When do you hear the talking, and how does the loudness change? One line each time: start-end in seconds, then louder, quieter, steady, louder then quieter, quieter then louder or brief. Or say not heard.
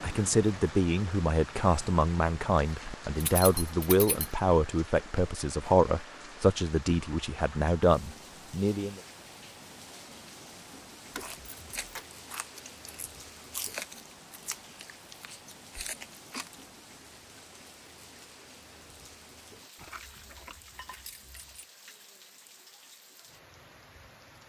0.0-9.0 steady.